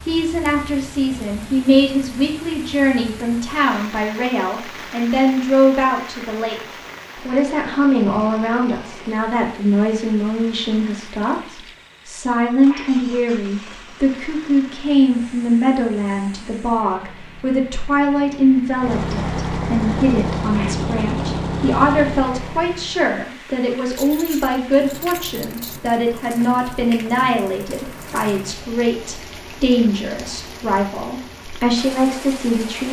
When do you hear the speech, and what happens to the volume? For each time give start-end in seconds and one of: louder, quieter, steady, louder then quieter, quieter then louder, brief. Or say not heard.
0.0-32.8 steady.